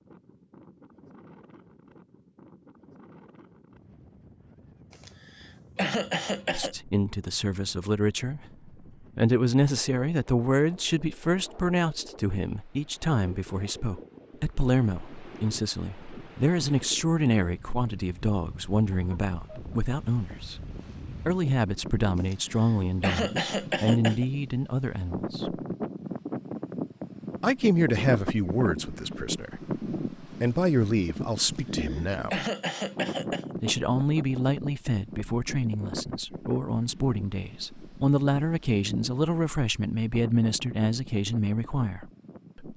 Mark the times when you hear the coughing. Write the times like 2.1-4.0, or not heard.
5.0-6.8, 22.3-24.2, 31.4-33.5.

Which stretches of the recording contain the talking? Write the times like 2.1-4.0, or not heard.
6.5-20.6, 21.2-25.6, 27.4-32.5, 33.6-42.7.